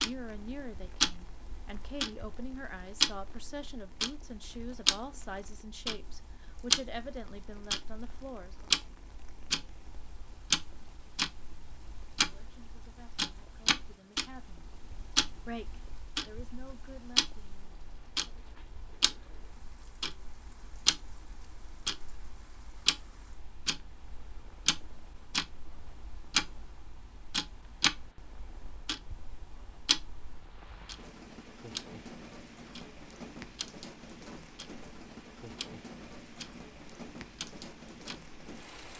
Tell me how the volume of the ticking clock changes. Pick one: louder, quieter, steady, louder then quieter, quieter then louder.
quieter.